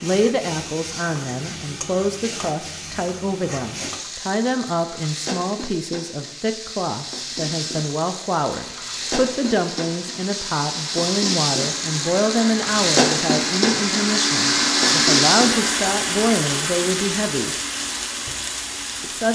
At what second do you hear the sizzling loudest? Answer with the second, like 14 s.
15 s.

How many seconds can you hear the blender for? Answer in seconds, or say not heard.
11 s.